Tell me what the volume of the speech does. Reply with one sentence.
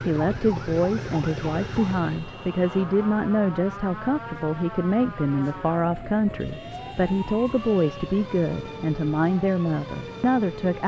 The loudness of the speech stays about the same.